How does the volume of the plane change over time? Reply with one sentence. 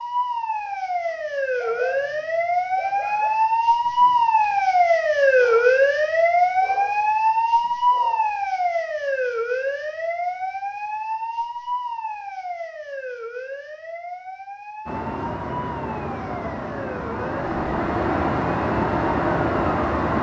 The loudness of the plane goes up.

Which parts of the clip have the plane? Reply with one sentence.
The plane can be heard from 14.8 to 20.1 s.